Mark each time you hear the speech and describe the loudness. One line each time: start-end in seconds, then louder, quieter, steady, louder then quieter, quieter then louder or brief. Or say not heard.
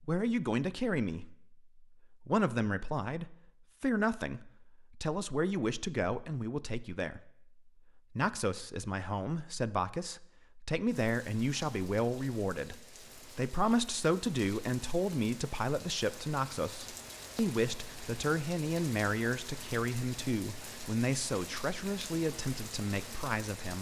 0.0-23.7 steady.